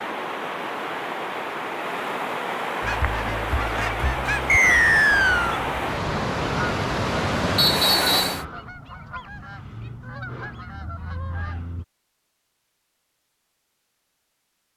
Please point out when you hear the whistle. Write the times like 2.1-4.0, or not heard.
4.5-5.6, 7.5-8.4.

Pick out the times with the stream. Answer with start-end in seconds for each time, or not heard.
0.0-8.4.